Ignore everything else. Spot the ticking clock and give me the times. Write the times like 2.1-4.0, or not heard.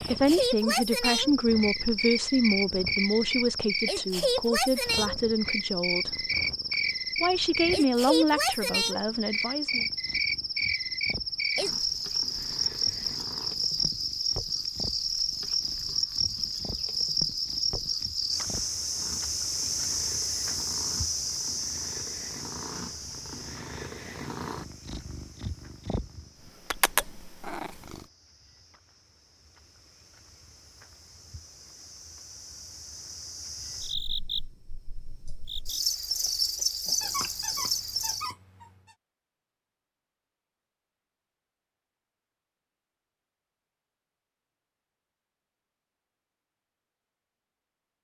not heard.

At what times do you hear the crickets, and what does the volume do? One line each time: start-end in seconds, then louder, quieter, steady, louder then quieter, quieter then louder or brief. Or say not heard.
0.0-38.4 quieter then louder.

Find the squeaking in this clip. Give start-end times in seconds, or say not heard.
37.0-39.0.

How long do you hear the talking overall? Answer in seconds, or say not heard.
9 s.